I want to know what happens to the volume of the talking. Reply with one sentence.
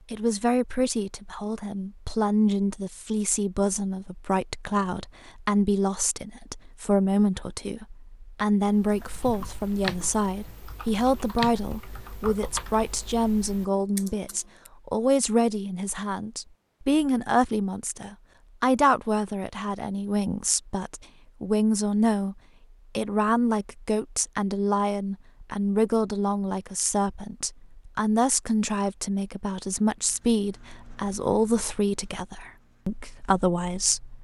The volume of the talking stays about the same.